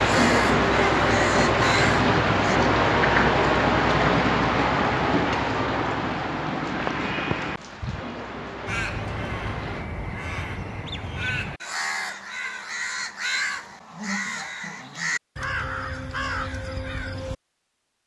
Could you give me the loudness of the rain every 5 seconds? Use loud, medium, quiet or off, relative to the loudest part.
loud, medium, off, off.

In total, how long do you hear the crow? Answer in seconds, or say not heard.
11 s.